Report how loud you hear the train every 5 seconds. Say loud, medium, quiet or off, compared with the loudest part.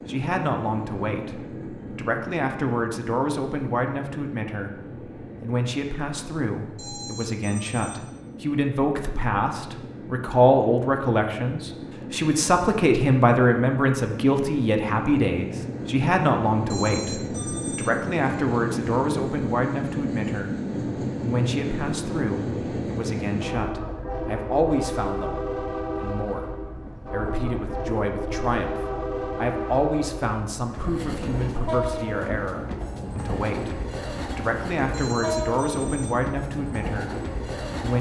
medium, medium, medium, loud, loud, loud, loud, loud.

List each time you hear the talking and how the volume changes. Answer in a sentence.
The talking can be heard from 0.0 to 37.9 s, getting louder then quieter.